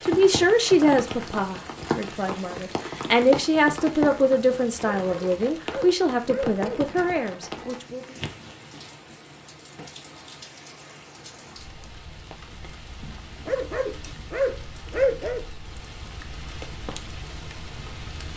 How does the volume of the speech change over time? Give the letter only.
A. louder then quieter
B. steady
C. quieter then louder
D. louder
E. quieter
E.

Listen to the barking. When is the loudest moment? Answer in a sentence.
The loudest moment of the barking is at 15 seconds.